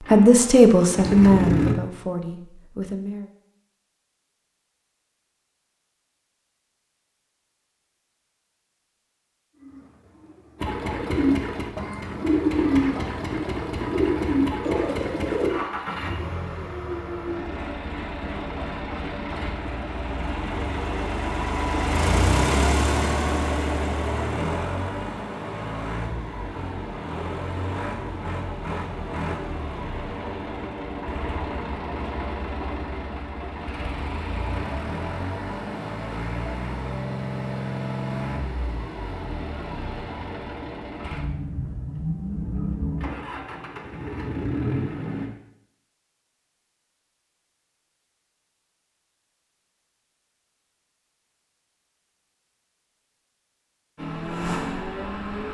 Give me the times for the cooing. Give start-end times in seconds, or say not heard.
9.6-15.7.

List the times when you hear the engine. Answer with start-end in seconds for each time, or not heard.
0.0-1.8, 10.6-45.3, 54.0-55.4.